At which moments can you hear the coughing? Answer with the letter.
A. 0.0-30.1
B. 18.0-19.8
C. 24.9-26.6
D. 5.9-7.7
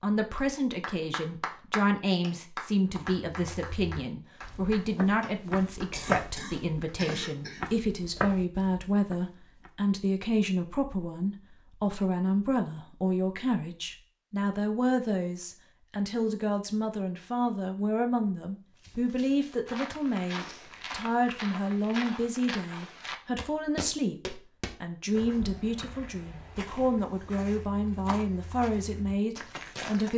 D.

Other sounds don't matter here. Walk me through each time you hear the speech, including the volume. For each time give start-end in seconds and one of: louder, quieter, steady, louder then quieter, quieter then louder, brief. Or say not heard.
0.0-30.1 steady.